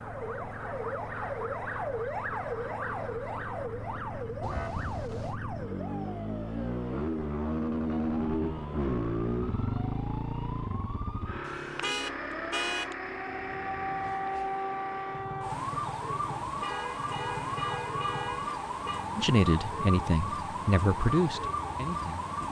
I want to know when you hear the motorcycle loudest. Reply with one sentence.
The volume of the motorcycle peaks at 8 seconds.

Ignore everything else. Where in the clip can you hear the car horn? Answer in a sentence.
The car horn can be heard from 4.4 to 5.3 s, from 11.4 to 12.9 s and from 16.3 to 19.1 s.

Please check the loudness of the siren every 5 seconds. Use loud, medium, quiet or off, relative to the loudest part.
loud, medium, loud, loud, loud.